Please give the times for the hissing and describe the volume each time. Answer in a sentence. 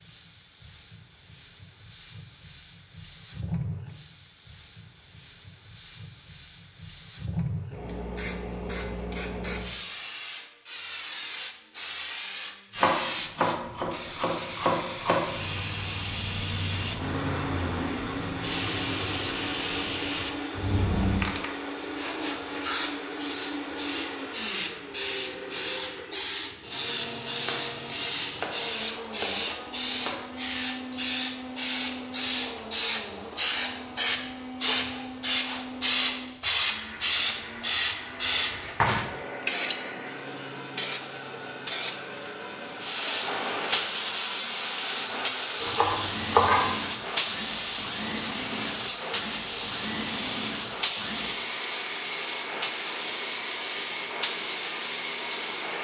You can hear the hissing from 0.0 to 55.7 s, getting louder.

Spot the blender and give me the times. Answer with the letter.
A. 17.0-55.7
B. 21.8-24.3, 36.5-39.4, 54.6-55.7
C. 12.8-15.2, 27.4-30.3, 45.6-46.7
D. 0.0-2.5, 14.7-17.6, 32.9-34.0
A.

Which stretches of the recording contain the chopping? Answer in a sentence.
The chopping can be heard from 12.8 to 15.2 s, from 27.4 to 30.3 s and from 45.6 to 46.7 s.